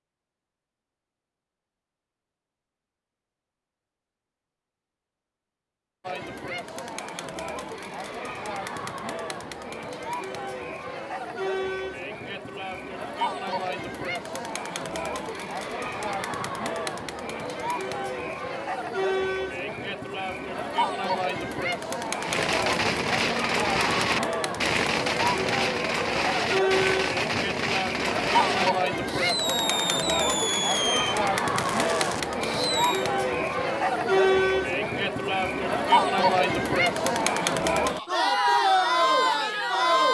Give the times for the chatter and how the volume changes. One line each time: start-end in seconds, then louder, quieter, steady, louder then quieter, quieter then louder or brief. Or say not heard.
6.0-40.0 louder.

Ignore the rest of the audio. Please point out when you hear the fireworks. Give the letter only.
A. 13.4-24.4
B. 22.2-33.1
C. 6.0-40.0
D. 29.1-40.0
B.